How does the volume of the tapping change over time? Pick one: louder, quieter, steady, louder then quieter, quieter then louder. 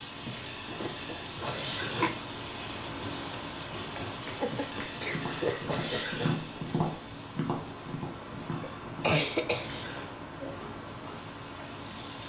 louder then quieter.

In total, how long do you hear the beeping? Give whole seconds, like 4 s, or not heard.
6 s.